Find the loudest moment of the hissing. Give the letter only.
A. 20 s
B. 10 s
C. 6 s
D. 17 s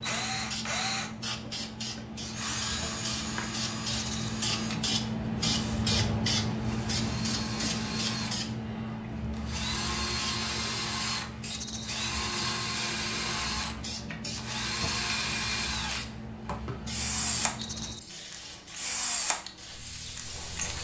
C.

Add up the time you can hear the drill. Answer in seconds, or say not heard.
20 s.